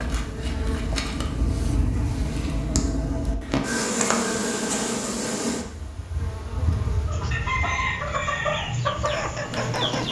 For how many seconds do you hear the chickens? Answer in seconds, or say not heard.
3 s.